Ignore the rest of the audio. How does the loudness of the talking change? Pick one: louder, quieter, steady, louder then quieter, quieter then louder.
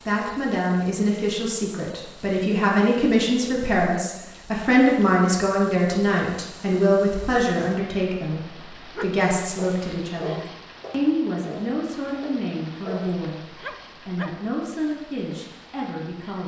quieter.